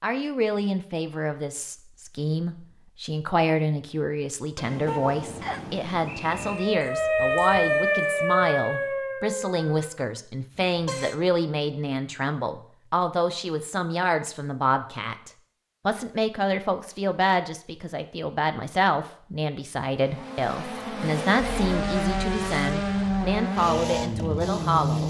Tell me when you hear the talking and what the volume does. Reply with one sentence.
The talking can be heard from 0.0 to 25.0 s, at a steady volume.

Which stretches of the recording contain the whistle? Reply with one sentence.
The whistle can be heard from 5.4 to 6.7 s.